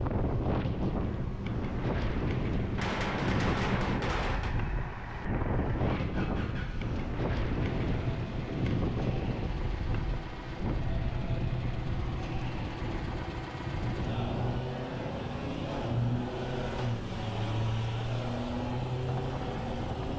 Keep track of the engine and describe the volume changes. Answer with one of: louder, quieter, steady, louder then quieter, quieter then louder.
louder.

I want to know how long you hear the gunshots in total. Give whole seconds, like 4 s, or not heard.
2 s.